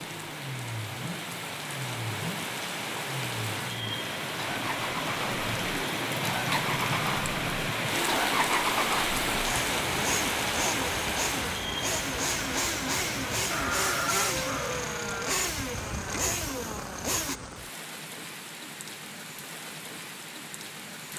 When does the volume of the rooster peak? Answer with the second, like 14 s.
14 s.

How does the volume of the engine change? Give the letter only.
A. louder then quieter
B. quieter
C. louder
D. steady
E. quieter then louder
C.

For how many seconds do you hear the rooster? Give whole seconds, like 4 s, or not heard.
2 s.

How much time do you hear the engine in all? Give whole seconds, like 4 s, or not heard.
17 s.